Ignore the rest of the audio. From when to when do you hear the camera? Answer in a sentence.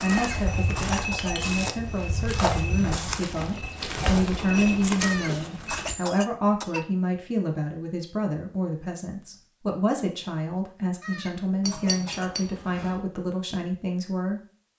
The camera can't be heard in this clip.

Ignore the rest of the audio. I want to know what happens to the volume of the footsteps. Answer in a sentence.
The loudness of the footsteps stays about the same.